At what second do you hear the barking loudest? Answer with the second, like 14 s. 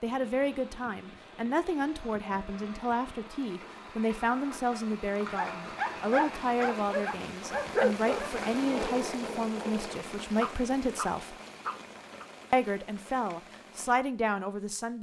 8 s.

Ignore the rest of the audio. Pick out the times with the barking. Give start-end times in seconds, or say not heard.
5.3-12.2.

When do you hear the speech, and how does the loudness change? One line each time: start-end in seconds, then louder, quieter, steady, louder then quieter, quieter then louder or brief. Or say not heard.
0.0-11.3 steady
12.5-14.9 brief.